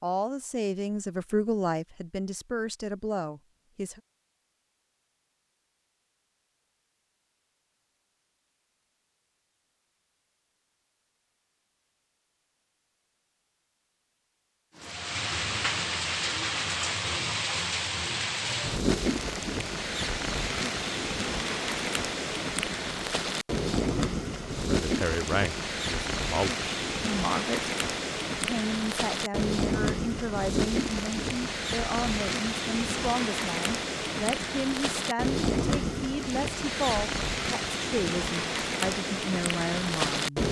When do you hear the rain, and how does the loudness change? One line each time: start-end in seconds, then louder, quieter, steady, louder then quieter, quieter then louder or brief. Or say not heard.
14.8-40.4 steady.